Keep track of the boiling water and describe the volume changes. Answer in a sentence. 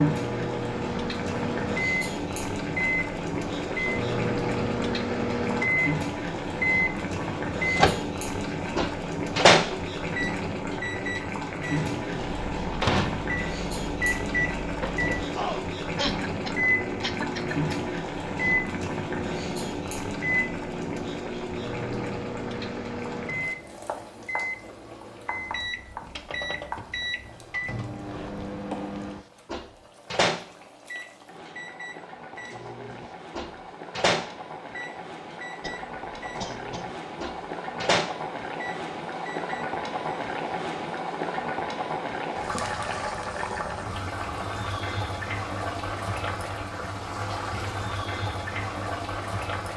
The volume of the boiling water goes down, then up.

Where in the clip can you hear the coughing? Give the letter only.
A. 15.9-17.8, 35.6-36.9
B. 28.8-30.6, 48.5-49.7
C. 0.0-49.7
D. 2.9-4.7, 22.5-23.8
A.